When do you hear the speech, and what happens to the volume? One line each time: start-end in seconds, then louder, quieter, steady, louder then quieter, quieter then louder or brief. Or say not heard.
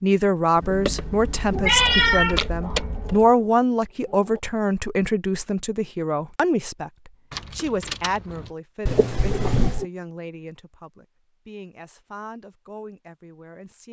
0.0-13.8 quieter.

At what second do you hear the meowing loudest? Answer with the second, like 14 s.
2 s.